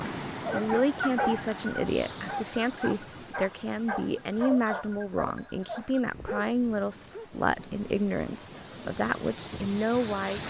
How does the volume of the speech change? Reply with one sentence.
The loudness of the speech stays about the same.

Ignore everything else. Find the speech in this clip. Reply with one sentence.
The speech can be heard from 0.0 to 10.4 s.